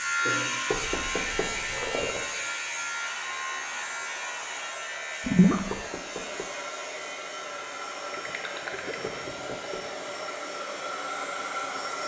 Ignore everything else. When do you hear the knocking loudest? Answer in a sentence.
The loudest moment of the knocking is at 1 second.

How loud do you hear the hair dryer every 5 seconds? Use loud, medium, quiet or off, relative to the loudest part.
medium, medium, loud.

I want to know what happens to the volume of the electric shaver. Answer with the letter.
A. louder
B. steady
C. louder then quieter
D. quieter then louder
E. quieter
E.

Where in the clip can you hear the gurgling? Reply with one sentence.
The gurgling can be heard from 0.7 to 2.2 s, from 5.2 to 5.8 s and from 8.1 to 9.8 s.